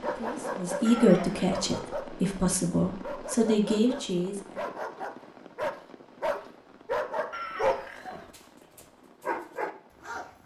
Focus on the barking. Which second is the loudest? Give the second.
8 s.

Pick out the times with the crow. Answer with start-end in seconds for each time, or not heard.
not heard.